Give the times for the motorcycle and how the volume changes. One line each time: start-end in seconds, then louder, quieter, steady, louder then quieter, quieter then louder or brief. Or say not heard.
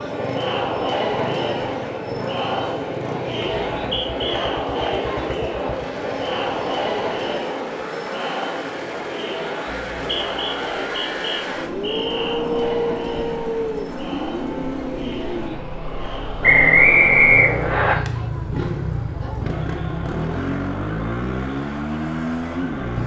0.0-23.0 louder.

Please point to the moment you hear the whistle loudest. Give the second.
17 s.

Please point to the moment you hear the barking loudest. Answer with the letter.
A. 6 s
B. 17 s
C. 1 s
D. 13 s
D.